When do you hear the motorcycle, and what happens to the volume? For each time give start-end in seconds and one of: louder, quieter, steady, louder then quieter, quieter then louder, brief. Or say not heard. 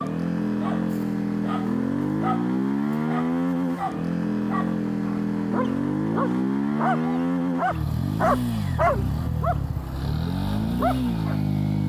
0.0-11.8 steady.